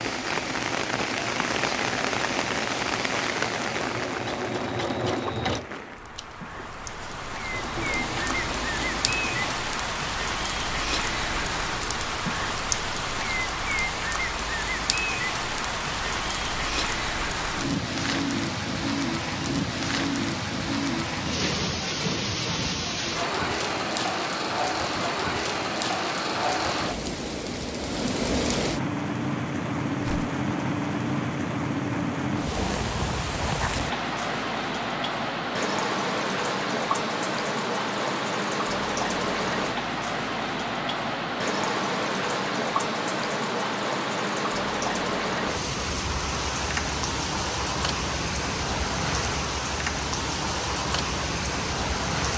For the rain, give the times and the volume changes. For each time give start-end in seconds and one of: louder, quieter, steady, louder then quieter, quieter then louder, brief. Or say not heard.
0.0-52.3 steady.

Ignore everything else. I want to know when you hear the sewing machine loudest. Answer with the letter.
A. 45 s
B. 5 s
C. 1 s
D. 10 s
B.